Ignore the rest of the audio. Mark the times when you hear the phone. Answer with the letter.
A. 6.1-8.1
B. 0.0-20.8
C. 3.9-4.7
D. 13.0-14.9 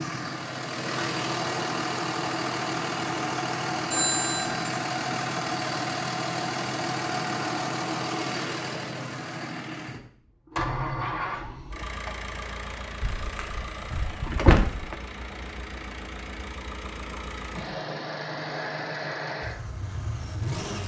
C.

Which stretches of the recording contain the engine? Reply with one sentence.
The engine can be heard from 0.0 to 20.8 s.